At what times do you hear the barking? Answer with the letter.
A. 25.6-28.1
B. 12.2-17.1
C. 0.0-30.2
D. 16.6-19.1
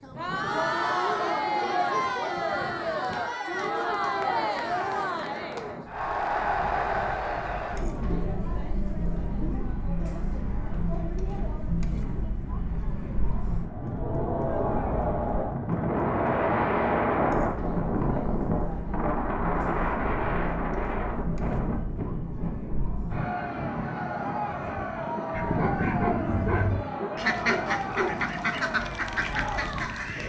A.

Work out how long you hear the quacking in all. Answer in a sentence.
The quacking can be heard for 5 seconds in total.